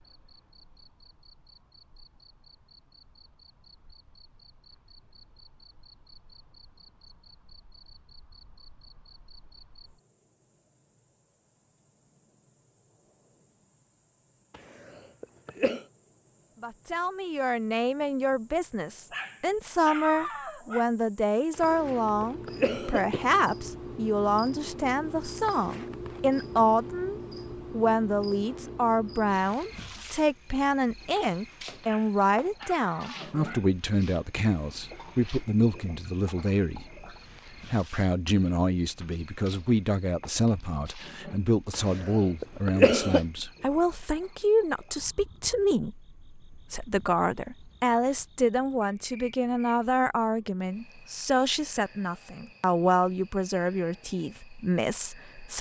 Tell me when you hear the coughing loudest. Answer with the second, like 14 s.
43 s.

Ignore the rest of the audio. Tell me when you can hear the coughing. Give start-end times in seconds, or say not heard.
14.5-15.8, 21.5-23.4, 41.7-43.2.